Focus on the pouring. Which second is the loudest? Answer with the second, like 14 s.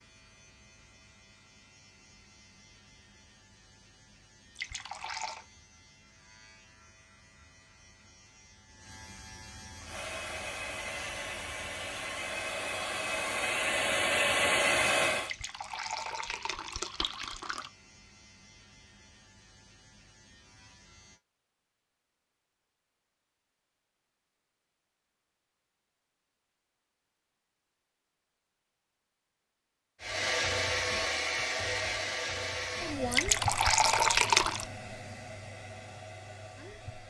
34 s.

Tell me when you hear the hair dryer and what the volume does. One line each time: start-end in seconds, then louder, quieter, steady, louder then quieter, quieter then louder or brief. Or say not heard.
9.8-15.3 louder
30.0-37.0 quieter.